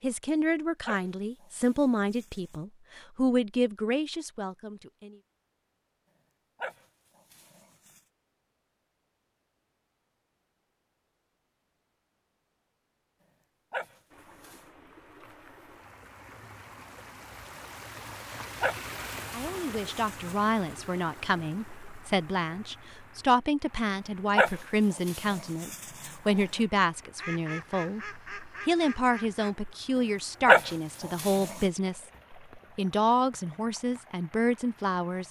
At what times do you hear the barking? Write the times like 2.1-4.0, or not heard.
0.8-2.5, 6.6-8.0, 13.7-14.7, 18.6-20.4, 24.4-26.4, 30.4-31.6.